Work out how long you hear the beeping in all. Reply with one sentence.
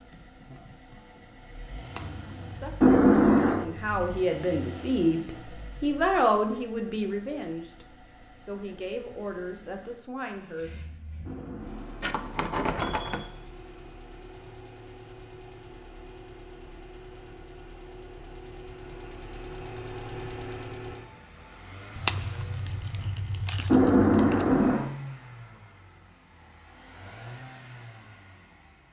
The beeping can be heard for 4 seconds in total.